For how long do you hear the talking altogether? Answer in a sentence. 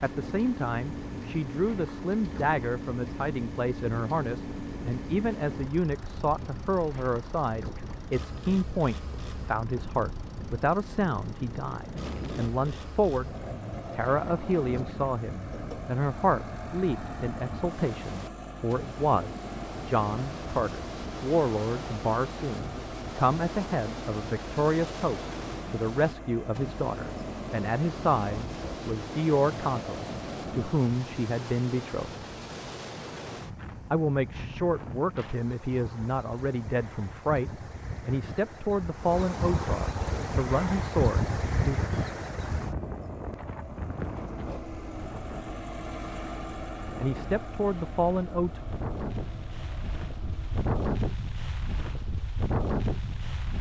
The talking can be heard for 42 seconds in total.